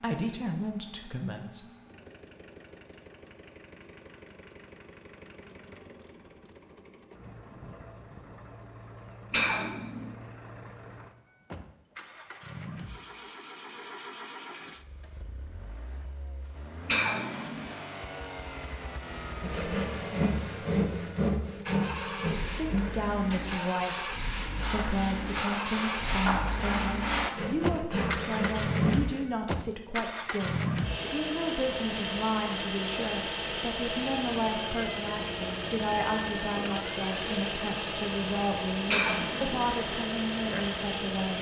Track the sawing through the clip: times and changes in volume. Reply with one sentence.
The sawing can be heard from 19.4 to 29.2 s, getting quieter then louder.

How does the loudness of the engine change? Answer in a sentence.
The volume of the engine goes up.